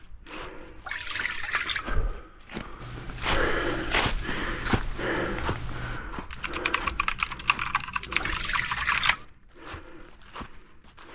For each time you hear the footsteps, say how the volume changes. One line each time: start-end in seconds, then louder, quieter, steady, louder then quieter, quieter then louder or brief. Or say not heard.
0.0-11.1 louder then quieter.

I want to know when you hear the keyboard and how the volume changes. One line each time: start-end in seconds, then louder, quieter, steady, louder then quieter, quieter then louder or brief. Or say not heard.
2.8-9.2 louder.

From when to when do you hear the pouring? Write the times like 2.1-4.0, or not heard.
0.8-1.9, 8.2-9.2.